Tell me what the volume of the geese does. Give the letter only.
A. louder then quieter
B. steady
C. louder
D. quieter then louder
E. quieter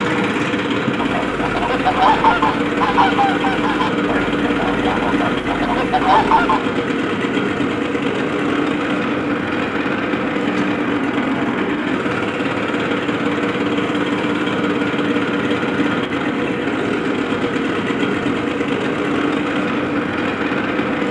D.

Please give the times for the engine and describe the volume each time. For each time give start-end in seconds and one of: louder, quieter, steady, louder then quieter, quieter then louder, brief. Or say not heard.
0.0-21.0 steady.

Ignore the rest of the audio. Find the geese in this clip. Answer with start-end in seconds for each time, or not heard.
1.2-6.6.